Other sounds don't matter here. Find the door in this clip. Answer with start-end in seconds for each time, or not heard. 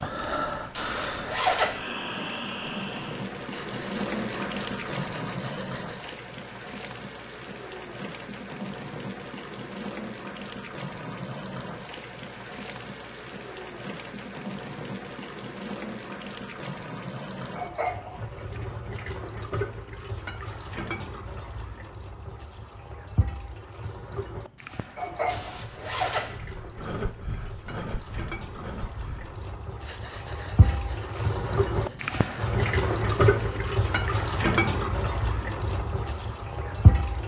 not heard.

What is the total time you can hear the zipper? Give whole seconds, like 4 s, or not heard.
2 s.